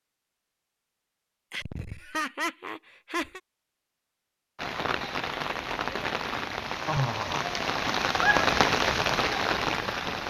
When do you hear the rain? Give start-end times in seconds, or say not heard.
4.5-10.2.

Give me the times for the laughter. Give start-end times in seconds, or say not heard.
1.5-3.4, 6.8-7.5.